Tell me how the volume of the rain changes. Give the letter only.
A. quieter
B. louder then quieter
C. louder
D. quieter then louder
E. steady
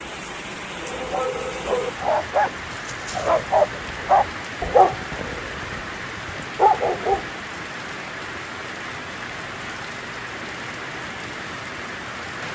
E.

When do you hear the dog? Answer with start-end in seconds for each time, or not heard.
0.8-7.4.